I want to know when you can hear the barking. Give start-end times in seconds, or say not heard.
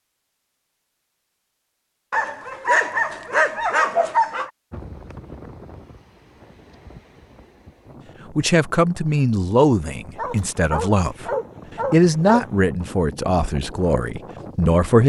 2.1-4.5, 10.2-12.4.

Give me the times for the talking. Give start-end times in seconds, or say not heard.
8.3-11.2, 11.9-15.0.